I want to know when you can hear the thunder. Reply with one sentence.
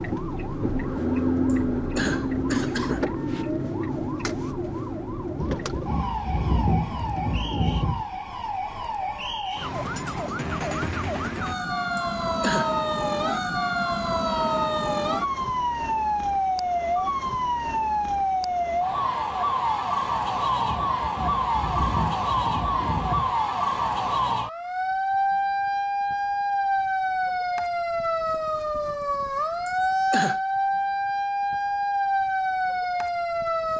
The thunder can be heard from 5.3 to 8.1 s and from 20.6 to 23.4 s.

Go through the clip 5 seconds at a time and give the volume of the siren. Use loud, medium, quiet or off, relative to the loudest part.
loud, medium, loud, loud, loud, loud, loud.